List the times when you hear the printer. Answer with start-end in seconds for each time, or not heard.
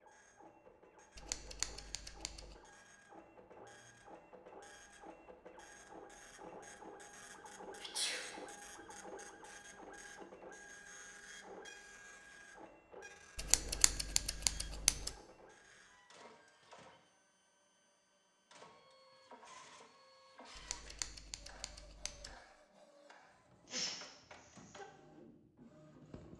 0.0-26.3.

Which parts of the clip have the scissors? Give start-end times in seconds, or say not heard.
1.1-2.5, 13.3-15.2, 20.6-22.4.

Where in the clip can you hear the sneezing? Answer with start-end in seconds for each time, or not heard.
7.8-8.2, 23.6-24.9.